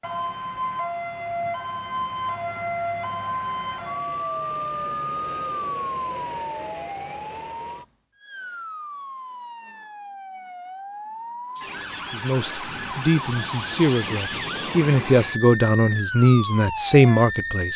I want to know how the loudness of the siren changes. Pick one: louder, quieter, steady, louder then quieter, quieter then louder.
quieter then louder.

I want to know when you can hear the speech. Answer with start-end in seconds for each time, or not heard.
12.1-17.7.